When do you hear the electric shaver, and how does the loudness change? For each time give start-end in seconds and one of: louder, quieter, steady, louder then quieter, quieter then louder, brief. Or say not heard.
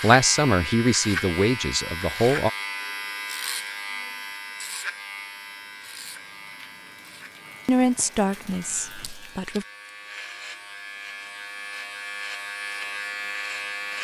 0.0-13.9 quieter then louder.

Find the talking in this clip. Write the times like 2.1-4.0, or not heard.
0.0-2.5, 7.7-9.7.